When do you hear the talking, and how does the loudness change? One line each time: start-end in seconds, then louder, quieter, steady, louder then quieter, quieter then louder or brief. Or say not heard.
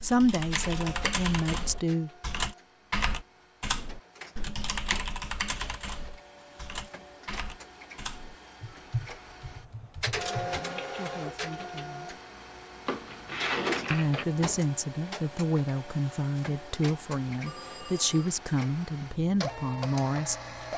0.0-2.1 brief
10.3-12.2 brief
13.9-20.6 steady.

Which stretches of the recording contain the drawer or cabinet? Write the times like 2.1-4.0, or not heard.
12.8-14.3.